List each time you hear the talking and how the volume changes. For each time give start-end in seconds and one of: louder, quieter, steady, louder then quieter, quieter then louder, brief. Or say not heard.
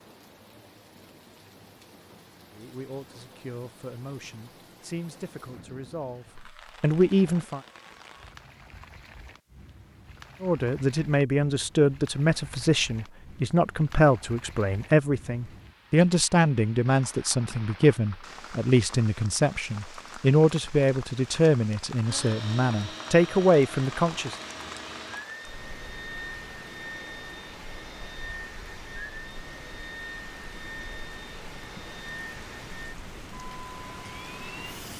2.5-7.6 louder
10.4-24.4 steady.